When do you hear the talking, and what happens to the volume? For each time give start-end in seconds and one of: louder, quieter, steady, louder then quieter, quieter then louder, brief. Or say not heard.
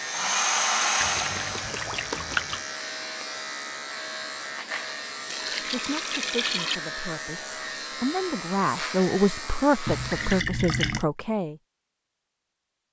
5.7-11.6 louder.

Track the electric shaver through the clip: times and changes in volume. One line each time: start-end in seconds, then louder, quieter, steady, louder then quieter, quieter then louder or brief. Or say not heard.
0.0-10.4 steady.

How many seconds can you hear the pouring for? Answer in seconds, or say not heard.
4 s.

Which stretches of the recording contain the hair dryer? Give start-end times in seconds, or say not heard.
0.0-1.8.